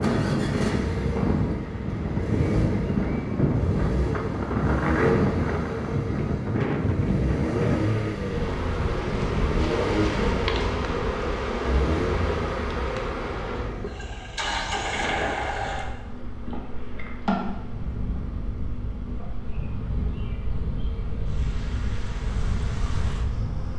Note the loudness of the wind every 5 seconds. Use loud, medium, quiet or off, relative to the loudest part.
loud, loud, quiet, quiet, medium.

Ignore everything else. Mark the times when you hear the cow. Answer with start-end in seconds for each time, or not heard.
not heard.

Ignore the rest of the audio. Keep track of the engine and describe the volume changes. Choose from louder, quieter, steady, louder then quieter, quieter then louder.
quieter.